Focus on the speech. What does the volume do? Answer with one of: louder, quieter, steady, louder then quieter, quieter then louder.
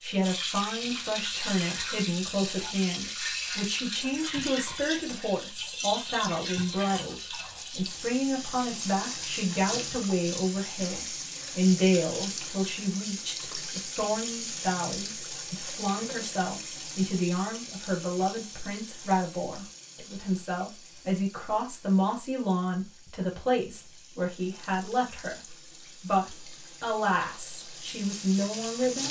steady.